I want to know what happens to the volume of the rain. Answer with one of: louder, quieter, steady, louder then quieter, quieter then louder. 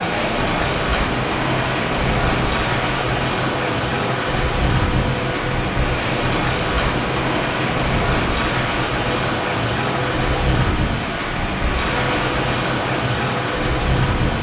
steady.